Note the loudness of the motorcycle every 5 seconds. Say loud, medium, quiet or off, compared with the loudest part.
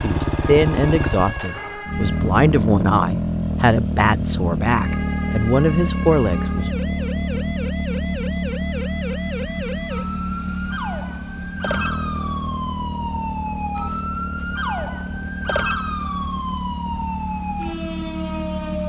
loud, loud, medium, medium.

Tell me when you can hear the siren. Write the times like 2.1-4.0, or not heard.
0.0-2.4, 4.7-18.8.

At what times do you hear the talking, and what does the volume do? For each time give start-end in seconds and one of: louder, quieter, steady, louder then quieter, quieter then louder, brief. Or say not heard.
0.0-6.8 steady.